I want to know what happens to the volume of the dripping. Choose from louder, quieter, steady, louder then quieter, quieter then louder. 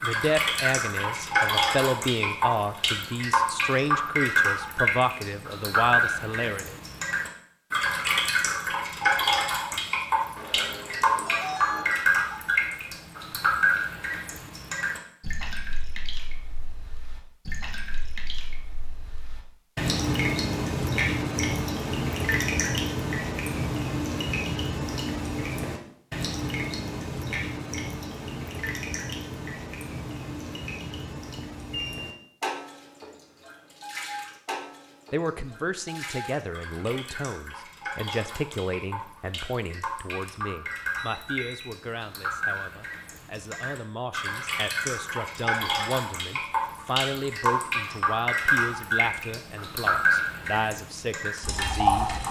quieter then louder.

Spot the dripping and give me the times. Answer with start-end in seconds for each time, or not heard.
0.0-52.2.